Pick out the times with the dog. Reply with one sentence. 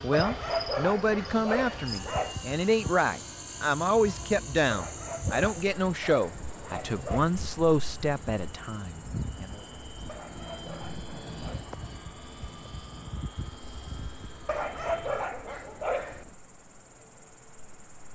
The dog can be heard from 0.1 to 2.4 s, from 4.7 to 7.2 s, from 10.1 to 11.7 s and from 14.4 to 16.4 s.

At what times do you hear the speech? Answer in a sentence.
You can hear the speech from 0.0 to 9.6 s.